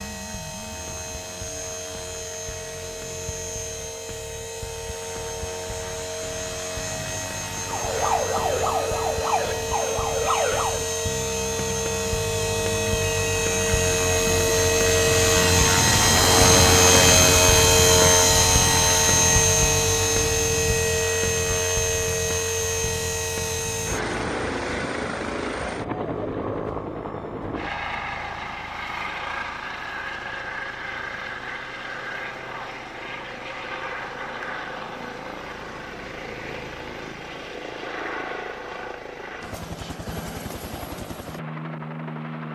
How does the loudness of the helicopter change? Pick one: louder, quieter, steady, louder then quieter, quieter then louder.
louder then quieter.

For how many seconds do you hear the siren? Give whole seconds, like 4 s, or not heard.
3 s.